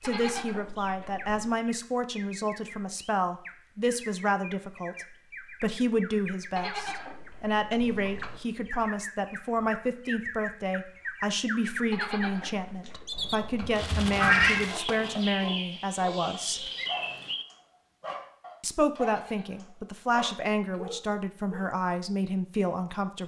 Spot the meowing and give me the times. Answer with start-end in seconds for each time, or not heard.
13.6-14.7.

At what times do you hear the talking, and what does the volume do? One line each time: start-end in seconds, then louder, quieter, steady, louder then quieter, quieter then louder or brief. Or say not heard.
0.0-16.6 steady
18.6-23.2 steady.